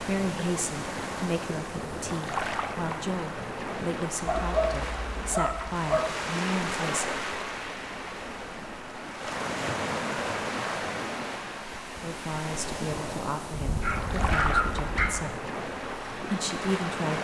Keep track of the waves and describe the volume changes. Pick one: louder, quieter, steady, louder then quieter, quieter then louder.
steady.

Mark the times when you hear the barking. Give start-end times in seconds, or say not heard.
4.2-6.0, 13.5-15.2.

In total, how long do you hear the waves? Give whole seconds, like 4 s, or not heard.
17 s.